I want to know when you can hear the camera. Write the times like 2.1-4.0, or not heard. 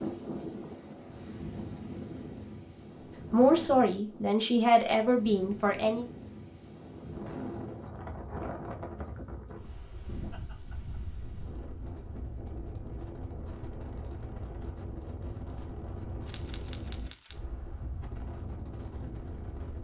16.2-17.4.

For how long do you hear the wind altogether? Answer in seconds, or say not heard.
20 s.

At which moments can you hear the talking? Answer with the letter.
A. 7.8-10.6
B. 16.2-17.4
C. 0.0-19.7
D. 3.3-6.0
D.